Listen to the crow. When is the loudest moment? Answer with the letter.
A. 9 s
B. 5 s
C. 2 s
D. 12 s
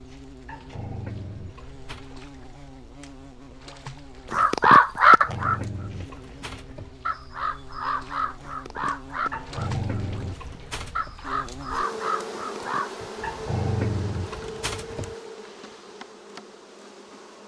B.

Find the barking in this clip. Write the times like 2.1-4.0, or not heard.
0.5-2.1, 5.0-7.0, 9.3-11.2, 13.2-15.2.